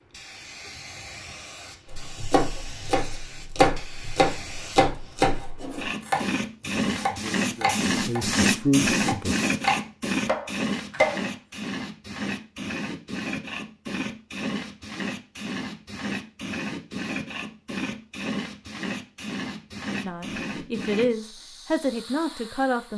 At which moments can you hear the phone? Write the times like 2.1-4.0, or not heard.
not heard.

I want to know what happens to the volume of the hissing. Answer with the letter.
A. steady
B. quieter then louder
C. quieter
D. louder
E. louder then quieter
E.